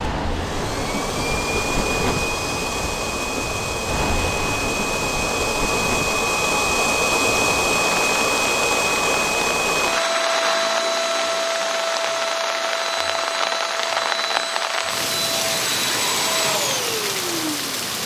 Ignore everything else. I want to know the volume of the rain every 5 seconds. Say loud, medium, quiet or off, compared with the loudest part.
loud, medium, loud, loud.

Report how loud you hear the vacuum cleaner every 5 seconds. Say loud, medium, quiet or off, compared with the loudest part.
medium, loud, loud, medium.